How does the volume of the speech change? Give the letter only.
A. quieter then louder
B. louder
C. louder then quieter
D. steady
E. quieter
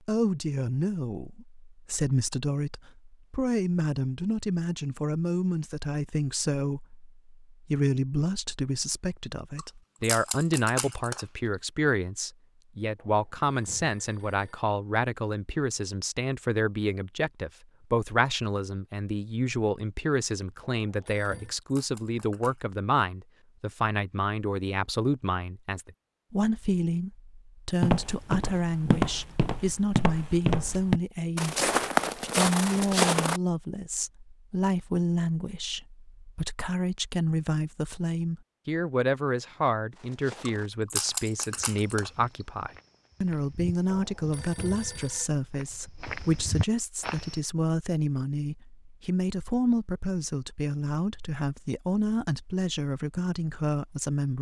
D.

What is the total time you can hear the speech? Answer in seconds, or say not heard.
54 s.